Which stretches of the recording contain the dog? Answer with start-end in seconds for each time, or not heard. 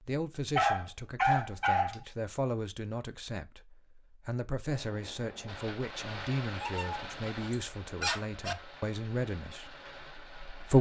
0.6-2.0, 6.5-8.6.